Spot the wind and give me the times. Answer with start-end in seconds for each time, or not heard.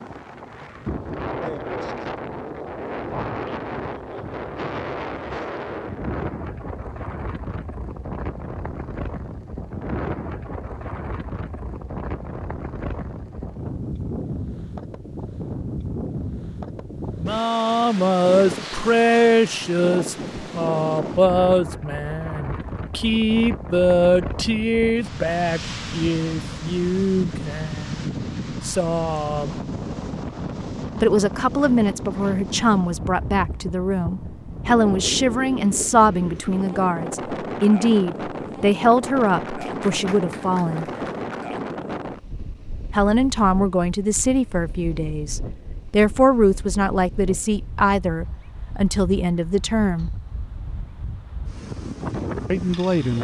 0.0-53.2.